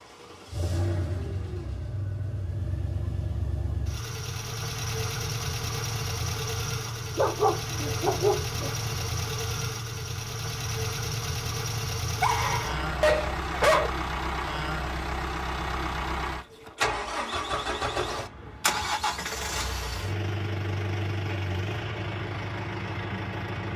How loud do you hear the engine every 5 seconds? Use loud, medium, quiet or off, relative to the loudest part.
medium, loud, loud, loud, loud.